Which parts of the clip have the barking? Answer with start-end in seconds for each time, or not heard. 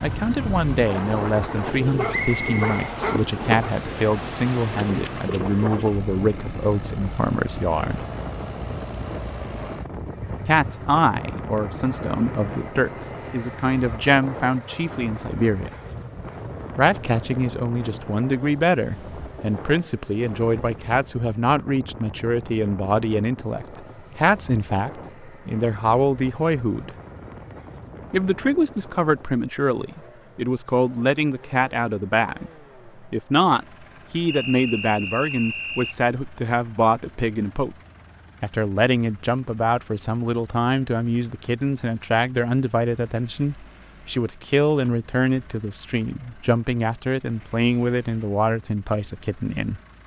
1.4-3.8.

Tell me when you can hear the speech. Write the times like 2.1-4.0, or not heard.
0.0-8.1, 10.4-15.7, 16.8-26.9, 28.1-37.8, 38.4-49.8.